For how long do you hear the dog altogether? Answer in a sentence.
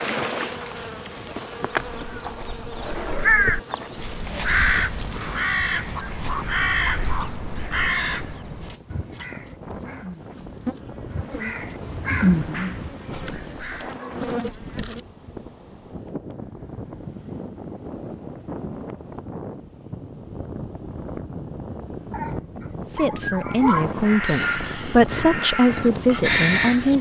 You can hear the dog for 5 seconds altogether.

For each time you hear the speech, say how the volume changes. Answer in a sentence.
You can hear the speech from 22.9 to 26.9 s, at a steady volume.